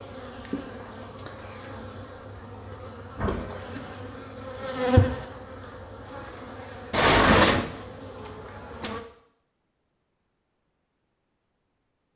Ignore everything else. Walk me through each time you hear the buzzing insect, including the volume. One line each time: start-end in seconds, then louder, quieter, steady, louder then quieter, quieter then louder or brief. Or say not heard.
0.0-9.1 louder then quieter.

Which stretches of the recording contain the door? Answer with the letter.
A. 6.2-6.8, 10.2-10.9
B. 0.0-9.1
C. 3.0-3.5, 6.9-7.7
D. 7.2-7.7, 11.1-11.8
C.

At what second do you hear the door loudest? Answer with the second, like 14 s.
7 s.